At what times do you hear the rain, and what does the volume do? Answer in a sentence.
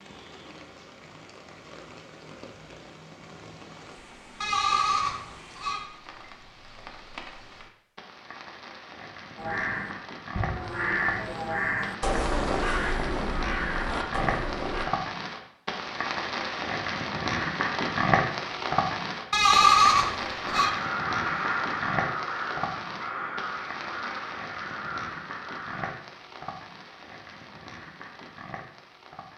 You can hear the rain from 0.0 to 29.3 s, getting louder then quieter.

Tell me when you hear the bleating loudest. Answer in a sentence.
The volume of the bleating peaks at 20 seconds.